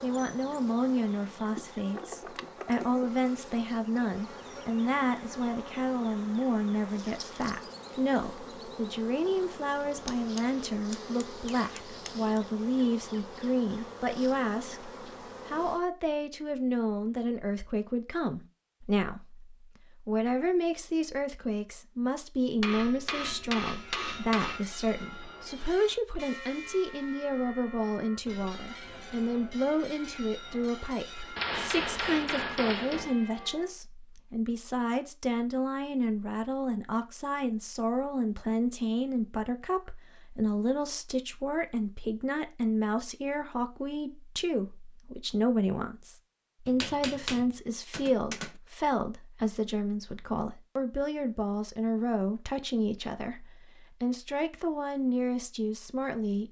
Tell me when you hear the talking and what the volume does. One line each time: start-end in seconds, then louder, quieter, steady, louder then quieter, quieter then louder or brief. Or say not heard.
0.0-56.4 steady.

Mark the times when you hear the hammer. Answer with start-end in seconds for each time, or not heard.
10.1-12.3, 22.6-24.6, 31.4-33.1, 46.6-48.5.